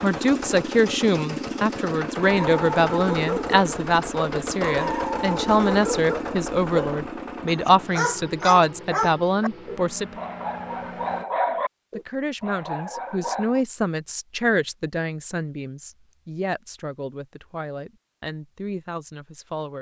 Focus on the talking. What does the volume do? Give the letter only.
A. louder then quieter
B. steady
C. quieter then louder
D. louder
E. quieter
E.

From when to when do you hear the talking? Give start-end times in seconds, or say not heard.
0.0-10.2, 11.9-19.7.